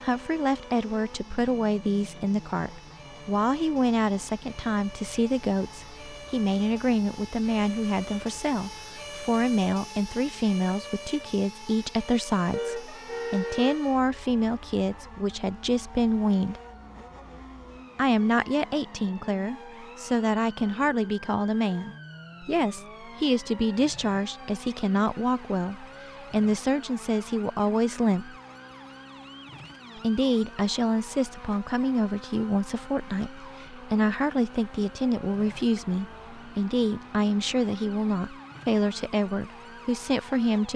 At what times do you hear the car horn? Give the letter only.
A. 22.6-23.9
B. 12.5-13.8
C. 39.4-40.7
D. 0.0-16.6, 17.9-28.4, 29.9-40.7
B.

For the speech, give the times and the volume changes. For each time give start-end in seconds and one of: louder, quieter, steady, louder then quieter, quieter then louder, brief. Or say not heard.
0.0-16.6 steady
17.9-28.4 steady
29.9-40.7 steady.